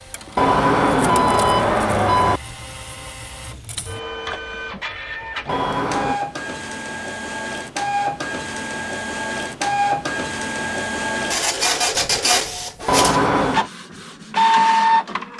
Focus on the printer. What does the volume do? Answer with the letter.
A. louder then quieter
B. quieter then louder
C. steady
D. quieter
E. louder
E.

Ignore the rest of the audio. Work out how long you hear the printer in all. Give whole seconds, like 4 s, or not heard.
15 s.